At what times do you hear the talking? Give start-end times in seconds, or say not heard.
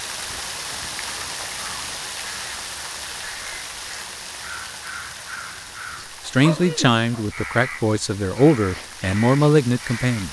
6.2-10.2.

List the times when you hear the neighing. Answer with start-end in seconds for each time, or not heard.
not heard.